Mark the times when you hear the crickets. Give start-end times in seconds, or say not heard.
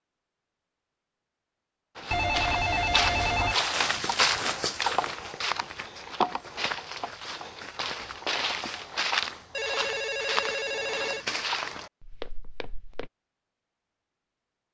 not heard.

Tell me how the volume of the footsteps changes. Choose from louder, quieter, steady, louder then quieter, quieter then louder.
quieter.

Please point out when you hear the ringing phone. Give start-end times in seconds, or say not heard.
2.1-3.5, 9.5-11.2.